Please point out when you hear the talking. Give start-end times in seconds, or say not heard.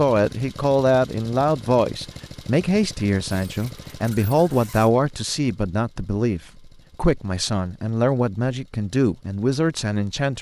0.0-10.3.